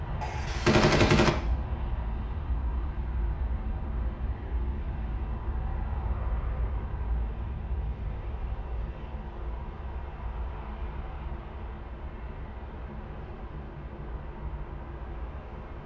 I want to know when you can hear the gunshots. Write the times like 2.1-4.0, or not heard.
0.2-1.3.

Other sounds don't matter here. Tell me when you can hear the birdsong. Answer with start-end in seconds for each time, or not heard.
not heard.